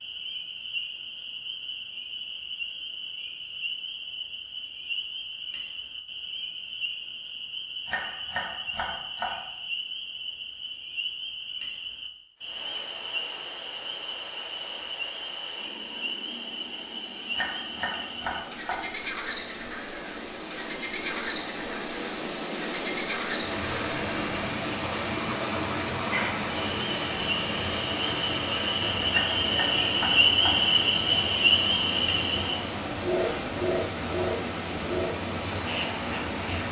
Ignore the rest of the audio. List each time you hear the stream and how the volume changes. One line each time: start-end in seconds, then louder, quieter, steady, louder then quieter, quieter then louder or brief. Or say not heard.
12.3-36.6 louder.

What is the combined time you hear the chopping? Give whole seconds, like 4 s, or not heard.
5 s.